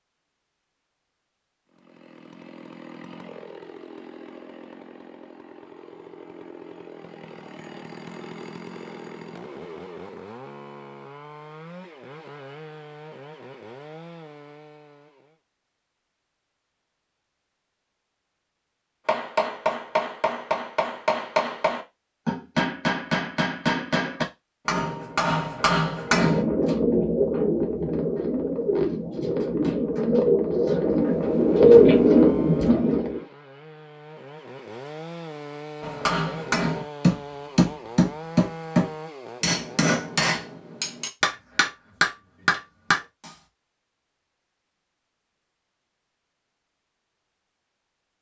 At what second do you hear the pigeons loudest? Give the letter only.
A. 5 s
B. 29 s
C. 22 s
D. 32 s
D.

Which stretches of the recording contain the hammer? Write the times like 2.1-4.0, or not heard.
19.1-26.4, 35.8-43.3.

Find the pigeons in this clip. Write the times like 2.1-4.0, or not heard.
26.1-33.2.